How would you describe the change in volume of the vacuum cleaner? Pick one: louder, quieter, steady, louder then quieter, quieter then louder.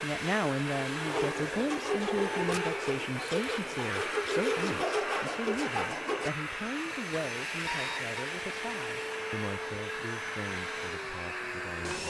steady.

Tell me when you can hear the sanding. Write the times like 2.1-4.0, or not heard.
1.1-6.3.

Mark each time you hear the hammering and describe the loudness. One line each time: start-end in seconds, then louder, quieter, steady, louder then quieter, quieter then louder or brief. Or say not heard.
not heard.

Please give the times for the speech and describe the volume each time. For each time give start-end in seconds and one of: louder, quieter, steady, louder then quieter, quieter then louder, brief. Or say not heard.
0.0-12.0 quieter.